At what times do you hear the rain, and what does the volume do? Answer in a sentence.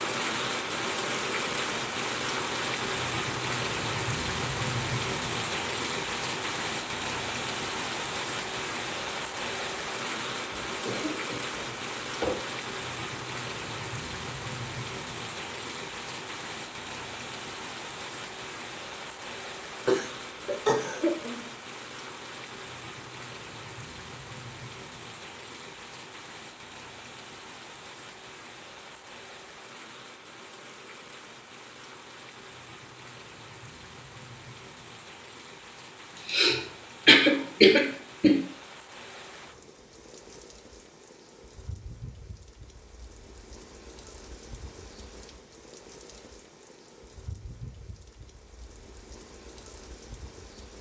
You can hear the rain from 0.0 to 50.7 s, getting quieter.